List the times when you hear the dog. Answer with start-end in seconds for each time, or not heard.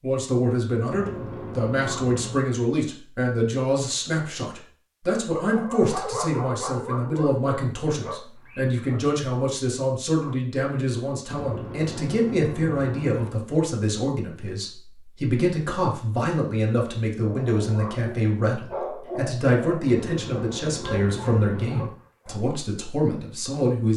5.2-9.0, 17.2-22.4.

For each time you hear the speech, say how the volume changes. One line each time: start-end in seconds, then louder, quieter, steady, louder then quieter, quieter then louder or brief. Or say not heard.
0.0-23.9 steady.